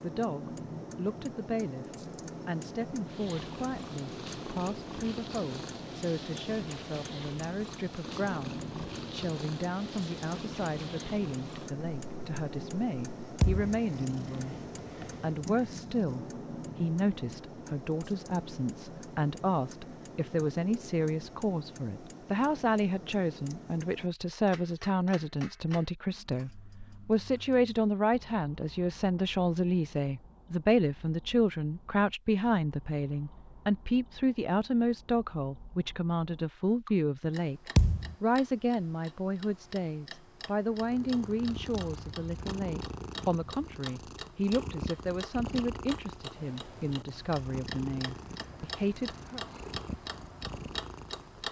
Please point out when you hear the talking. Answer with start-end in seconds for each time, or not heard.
0.0-14.6, 15.2-37.6, 38.2-49.4.